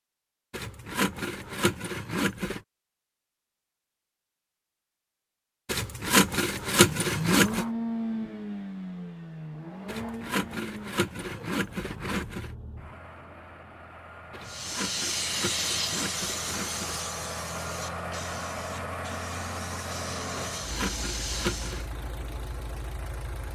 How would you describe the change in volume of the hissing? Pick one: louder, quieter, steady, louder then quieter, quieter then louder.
quieter then louder.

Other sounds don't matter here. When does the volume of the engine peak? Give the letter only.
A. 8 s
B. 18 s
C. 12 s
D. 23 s
A.